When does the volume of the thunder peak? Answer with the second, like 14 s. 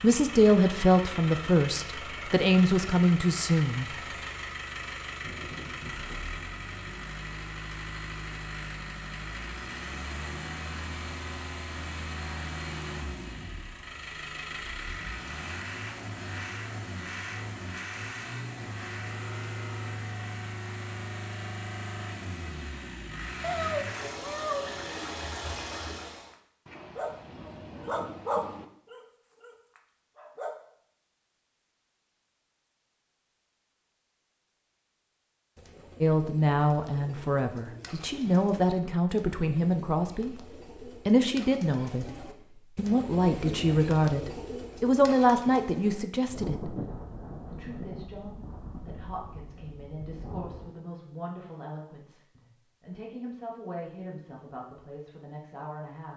47 s.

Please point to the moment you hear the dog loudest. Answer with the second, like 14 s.
28 s.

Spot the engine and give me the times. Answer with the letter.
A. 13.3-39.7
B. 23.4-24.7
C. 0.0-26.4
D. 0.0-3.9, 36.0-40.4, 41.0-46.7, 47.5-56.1
C.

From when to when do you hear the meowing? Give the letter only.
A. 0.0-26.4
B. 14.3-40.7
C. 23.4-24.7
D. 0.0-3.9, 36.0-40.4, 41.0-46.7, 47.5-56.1
C.